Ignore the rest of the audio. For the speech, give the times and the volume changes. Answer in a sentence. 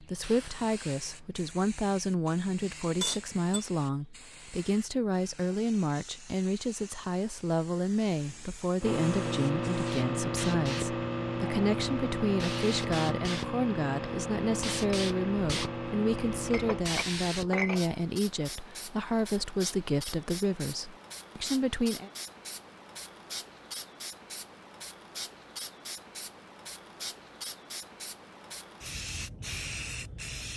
You can hear the speech from 0.0 to 22.1 s, at a steady volume.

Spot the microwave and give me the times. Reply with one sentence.
You can hear the microwave from 8.8 to 16.9 s.